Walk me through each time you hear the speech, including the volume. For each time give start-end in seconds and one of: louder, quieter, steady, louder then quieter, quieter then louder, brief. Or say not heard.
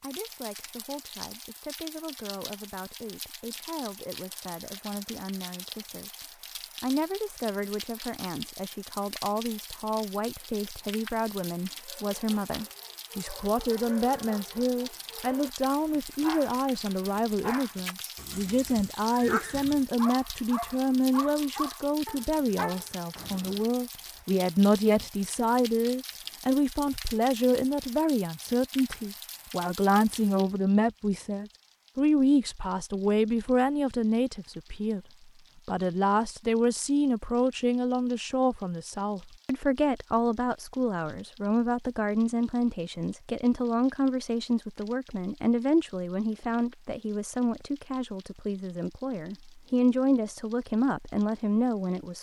0.0-35.0 louder
35.6-52.1 steady.